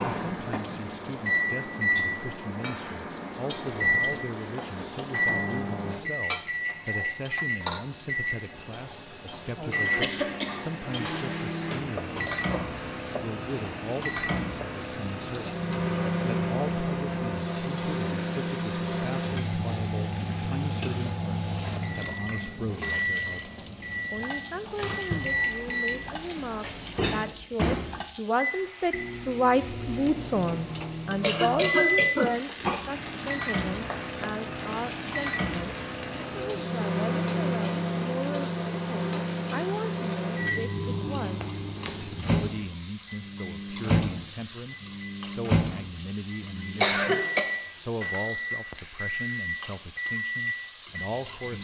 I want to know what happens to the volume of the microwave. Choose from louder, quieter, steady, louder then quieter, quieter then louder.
steady.